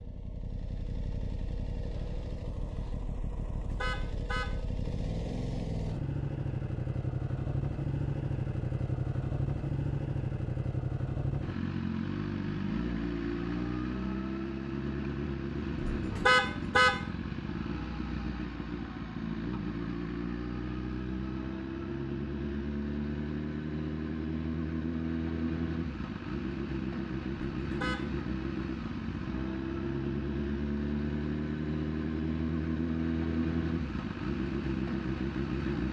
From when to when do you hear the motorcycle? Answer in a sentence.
The motorcycle can be heard from 0.0 to 35.8 s.